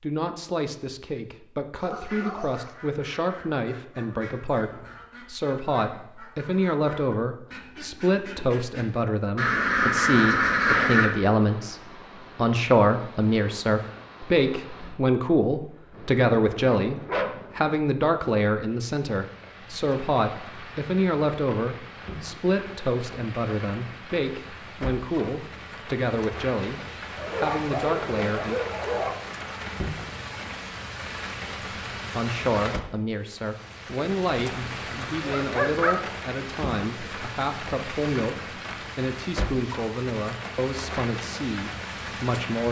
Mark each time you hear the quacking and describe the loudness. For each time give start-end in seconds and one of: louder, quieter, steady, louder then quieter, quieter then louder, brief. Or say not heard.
2.0-11.1 louder.